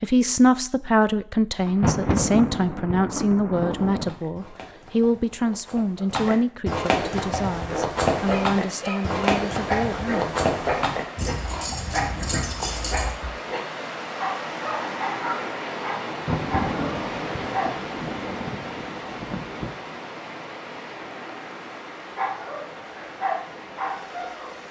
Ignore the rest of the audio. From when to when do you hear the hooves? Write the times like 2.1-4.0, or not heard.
3.9-13.3.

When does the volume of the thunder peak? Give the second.
2 s.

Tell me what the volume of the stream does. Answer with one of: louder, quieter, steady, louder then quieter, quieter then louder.
louder then quieter.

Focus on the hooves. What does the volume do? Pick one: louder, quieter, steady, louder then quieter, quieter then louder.
louder then quieter.